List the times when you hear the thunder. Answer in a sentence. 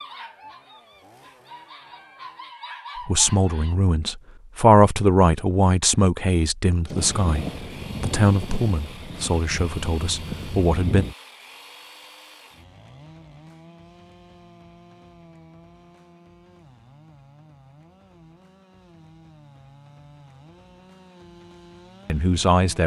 You can hear the thunder from 6.9 to 11.2 s.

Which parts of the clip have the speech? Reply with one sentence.
The speech can be heard from 3.0 to 11.1 s and from 22.1 to 22.8 s.